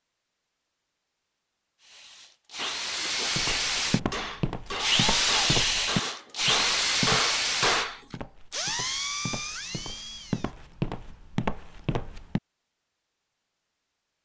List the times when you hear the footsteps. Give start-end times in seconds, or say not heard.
3.4-12.4.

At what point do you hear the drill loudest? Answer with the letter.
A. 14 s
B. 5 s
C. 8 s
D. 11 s
B.